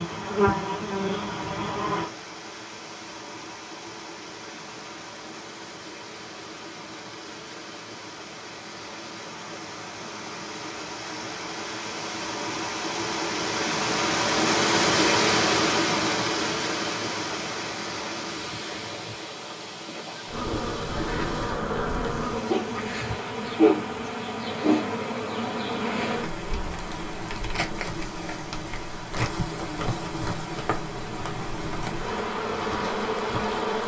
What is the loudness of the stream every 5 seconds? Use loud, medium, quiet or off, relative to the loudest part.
quiet, quiet, loud, loud, quiet, quiet, quiet.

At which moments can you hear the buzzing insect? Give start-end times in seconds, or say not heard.
0.0-2.1, 20.2-33.8.